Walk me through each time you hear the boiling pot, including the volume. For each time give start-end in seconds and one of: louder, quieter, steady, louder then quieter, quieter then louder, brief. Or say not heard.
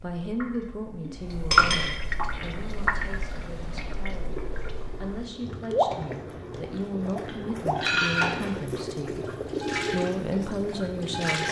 2.1-11.4 louder.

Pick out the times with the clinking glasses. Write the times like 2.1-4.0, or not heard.
1.1-1.9, 7.2-8.6.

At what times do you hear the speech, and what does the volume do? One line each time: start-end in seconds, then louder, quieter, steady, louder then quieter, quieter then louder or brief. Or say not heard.
0.0-11.4 quieter then louder.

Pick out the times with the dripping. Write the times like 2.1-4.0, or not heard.
0.0-11.4.